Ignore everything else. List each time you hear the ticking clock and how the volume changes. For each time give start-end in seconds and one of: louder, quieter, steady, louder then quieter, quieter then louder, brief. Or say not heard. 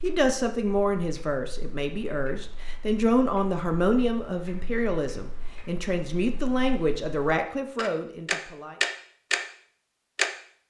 0.0-9.4 louder
10.2-10.6 brief.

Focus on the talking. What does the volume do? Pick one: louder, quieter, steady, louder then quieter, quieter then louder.
steady.